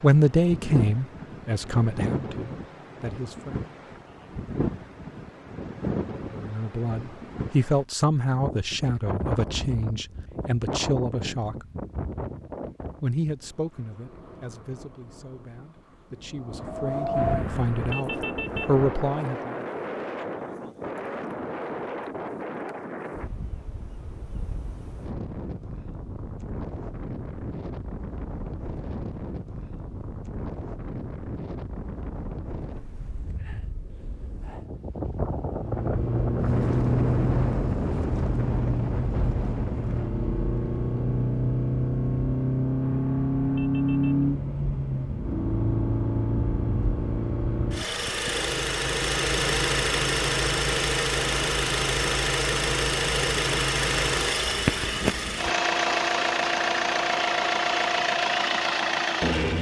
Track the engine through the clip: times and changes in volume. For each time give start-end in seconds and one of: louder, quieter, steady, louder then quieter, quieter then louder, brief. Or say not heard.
35.5-59.5 steady.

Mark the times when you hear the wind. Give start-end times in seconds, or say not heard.
0.0-40.1.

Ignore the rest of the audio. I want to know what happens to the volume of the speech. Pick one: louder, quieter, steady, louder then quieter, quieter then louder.
quieter then louder.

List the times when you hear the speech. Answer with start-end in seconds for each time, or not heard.
0.0-3.7, 6.3-11.7, 13.0-19.6.